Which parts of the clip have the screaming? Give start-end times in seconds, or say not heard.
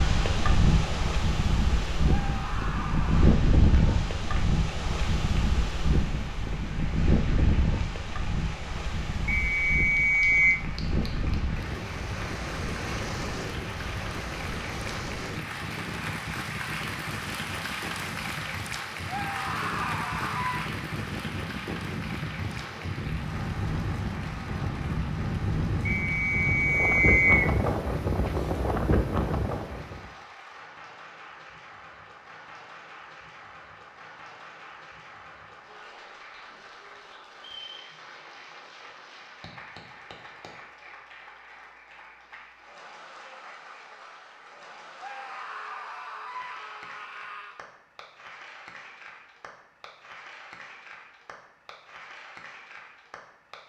2.0-3.4, 19.1-20.7, 45.0-47.6.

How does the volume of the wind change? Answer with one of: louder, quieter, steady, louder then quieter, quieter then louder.
quieter then louder.